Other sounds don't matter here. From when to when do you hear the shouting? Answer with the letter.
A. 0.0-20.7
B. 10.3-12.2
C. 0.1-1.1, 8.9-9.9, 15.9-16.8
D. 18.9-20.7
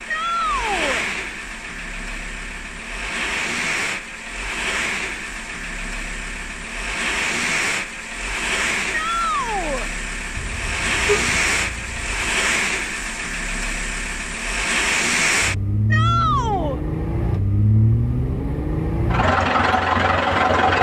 C.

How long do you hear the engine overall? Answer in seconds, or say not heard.
21 s.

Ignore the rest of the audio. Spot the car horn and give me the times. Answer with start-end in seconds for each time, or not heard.
10.3-12.2.